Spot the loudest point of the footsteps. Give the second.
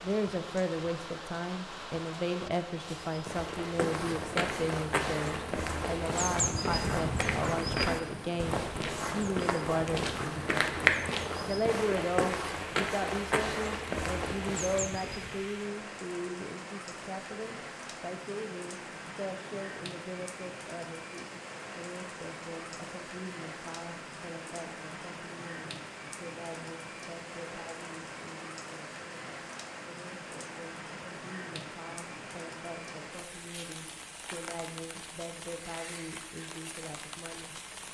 11 s.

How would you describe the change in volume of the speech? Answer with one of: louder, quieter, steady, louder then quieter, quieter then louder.
quieter.